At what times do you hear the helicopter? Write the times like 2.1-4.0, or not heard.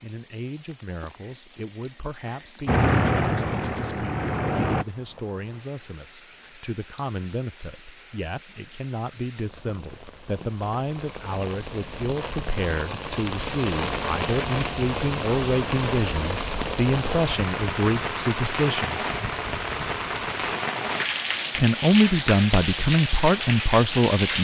2.6-4.8.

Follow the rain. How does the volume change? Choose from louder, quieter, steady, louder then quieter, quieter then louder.
louder.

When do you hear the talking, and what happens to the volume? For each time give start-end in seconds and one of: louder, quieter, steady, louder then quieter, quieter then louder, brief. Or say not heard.
0.0-19.0 louder
21.6-24.3 brief.